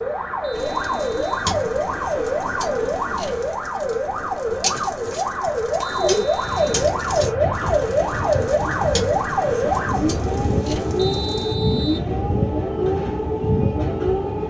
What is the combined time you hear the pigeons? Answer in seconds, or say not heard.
11 s.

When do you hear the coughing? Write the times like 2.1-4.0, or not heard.
not heard.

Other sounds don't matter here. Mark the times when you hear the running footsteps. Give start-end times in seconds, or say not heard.
not heard.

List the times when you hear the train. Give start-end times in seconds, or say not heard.
6.2-14.4.